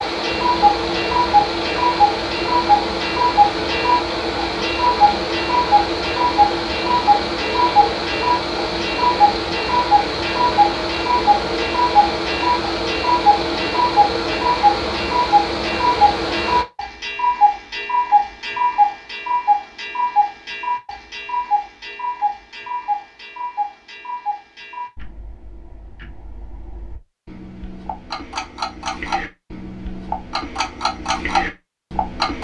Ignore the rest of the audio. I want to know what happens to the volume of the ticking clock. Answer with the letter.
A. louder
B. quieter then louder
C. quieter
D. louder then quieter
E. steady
C.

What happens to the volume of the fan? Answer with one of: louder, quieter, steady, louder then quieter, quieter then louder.
steady.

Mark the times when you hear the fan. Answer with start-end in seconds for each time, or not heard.
0.0-16.6.